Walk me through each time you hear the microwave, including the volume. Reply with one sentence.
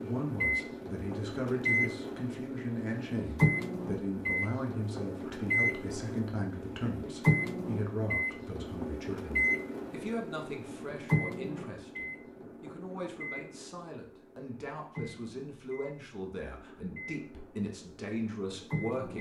The microwave can be heard from 0.0 to 19.1 s, getting quieter.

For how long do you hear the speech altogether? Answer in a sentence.
The speech can be heard for 19 seconds in total.